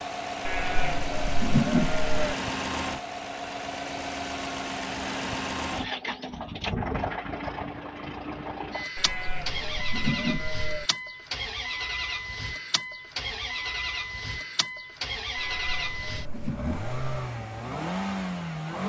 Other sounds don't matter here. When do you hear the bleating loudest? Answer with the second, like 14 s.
2 s.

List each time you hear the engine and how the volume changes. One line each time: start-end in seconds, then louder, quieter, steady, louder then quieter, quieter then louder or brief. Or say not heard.
0.0-18.8 steady.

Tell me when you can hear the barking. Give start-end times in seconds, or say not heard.
not heard.